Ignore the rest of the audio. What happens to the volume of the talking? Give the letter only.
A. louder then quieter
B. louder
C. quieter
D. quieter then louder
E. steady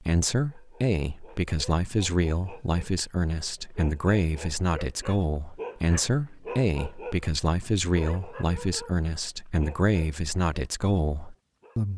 E.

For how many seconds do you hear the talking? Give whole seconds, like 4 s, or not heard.
12 s.